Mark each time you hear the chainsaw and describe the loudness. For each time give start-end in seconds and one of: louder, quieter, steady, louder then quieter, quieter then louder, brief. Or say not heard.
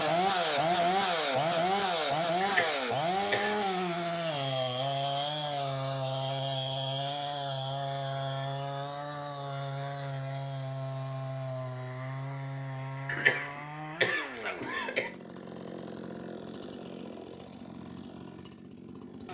0.0-19.2 quieter.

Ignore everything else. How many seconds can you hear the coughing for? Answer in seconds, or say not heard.
3 s.